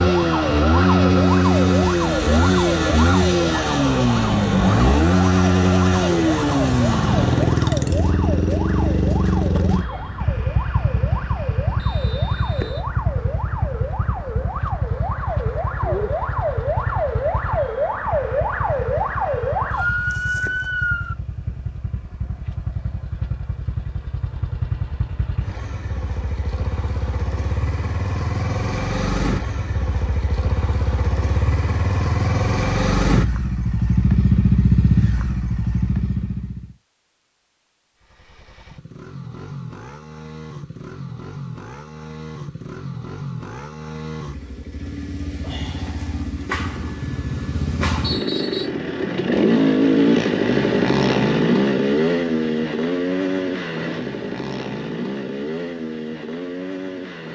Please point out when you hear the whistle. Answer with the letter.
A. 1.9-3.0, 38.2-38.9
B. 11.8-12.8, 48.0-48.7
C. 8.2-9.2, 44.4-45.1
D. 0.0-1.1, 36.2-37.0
B.